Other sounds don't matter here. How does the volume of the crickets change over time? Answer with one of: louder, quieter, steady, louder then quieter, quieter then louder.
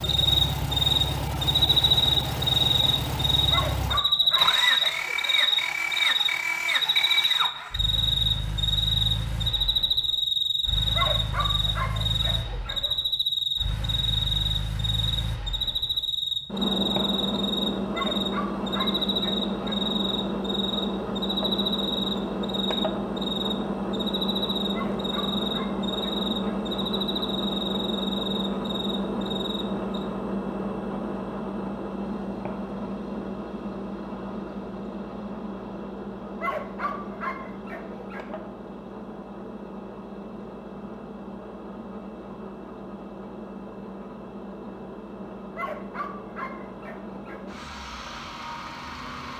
quieter.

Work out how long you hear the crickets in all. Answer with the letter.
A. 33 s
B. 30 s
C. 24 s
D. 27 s
B.